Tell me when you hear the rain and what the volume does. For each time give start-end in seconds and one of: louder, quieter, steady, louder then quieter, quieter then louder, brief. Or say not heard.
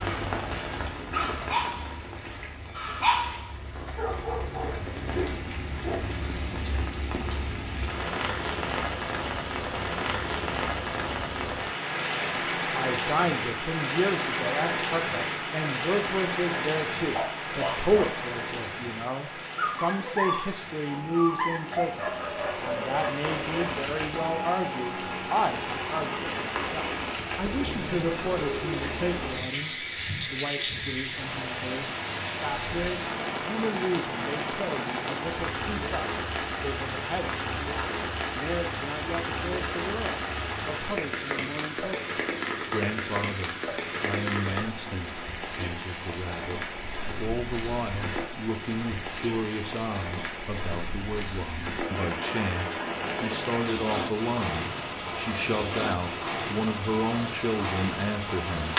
0.0-58.7 steady.